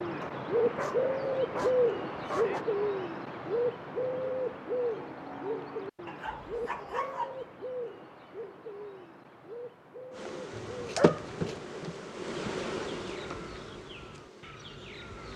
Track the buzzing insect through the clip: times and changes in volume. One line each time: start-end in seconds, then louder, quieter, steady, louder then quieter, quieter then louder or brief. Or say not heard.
10.1-15.3 quieter.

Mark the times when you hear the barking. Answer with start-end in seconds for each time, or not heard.
0.2-2.6, 6.0-7.4, 10.5-11.6.